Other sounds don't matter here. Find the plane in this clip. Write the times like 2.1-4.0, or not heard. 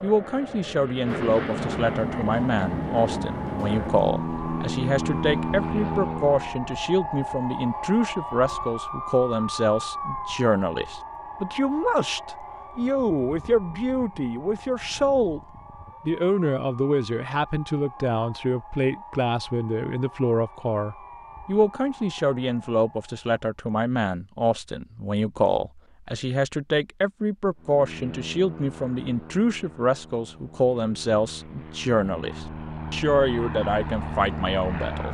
0.0-6.6, 27.6-35.0.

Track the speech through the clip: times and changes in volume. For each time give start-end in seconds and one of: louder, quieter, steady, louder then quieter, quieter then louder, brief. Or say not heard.
0.0-15.4 steady
16.1-35.0 steady.